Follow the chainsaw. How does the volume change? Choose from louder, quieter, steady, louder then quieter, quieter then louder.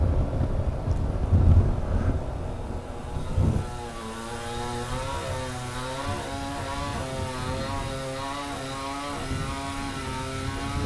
louder.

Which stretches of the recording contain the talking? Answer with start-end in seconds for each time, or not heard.
not heard.